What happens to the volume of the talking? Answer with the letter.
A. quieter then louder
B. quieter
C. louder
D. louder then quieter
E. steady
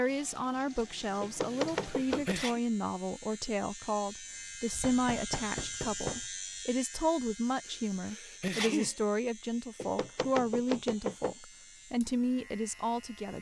E.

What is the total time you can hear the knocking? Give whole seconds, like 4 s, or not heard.
4 s.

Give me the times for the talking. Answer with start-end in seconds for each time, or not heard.
0.0-13.3.